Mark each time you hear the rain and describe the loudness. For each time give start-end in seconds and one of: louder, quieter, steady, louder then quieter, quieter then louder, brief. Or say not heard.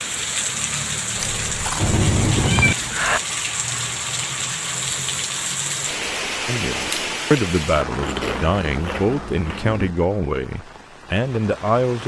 0.0-12.0 quieter.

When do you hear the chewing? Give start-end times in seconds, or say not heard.
1.1-2.5, 7.9-9.9.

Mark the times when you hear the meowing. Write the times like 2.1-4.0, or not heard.
1.8-3.2.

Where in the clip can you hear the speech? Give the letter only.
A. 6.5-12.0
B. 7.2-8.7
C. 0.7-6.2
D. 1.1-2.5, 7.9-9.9
A.